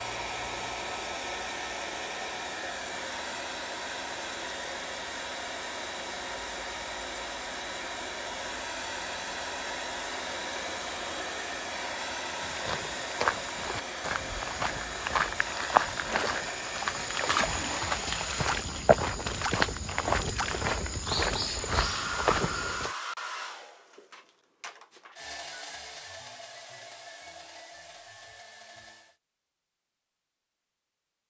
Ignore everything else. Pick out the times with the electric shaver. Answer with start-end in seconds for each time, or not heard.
not heard.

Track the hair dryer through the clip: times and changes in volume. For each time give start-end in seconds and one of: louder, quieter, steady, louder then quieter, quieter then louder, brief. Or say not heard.
0.0-18.6 steady
21.6-29.2 quieter.